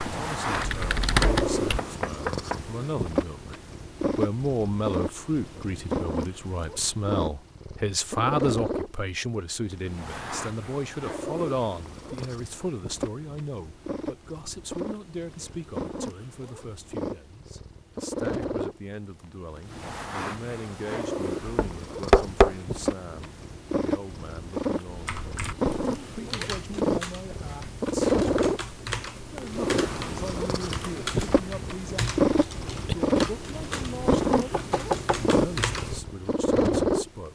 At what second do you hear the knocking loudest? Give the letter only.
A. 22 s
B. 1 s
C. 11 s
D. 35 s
A.